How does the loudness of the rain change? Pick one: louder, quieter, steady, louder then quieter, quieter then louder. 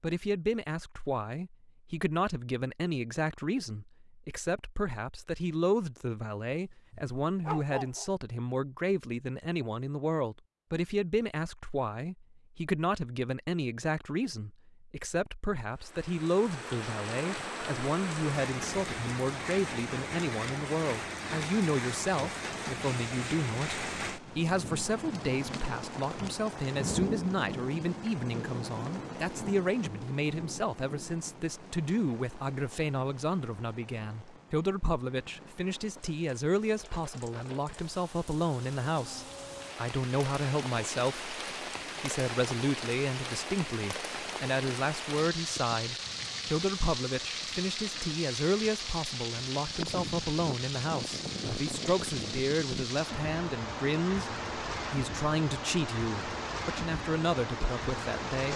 quieter then louder.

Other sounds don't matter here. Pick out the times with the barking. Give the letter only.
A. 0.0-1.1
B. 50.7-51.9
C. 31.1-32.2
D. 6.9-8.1
D.